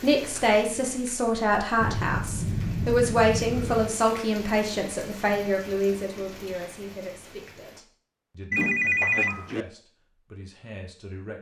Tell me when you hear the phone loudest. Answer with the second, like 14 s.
9 s.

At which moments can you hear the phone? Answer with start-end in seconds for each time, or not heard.
1.8-4.0, 8.5-9.7.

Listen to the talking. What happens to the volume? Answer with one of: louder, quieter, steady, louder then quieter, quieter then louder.
quieter.